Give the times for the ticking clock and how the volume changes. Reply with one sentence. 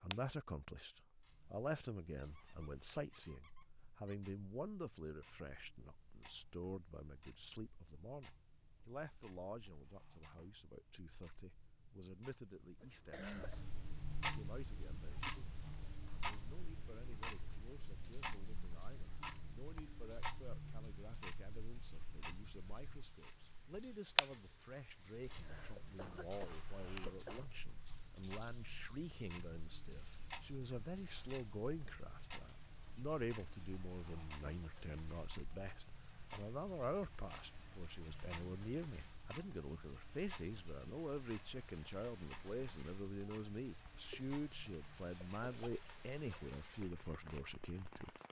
The ticking clock can be heard from 0.0 to 48.0 s, getting louder then quieter.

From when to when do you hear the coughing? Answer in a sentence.
You can hear the coughing from 12.8 to 13.7 s, from 25.3 to 27.5 s and from 44.1 to 45.7 s.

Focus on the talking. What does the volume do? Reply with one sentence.
The loudness of the talking goes down, then up.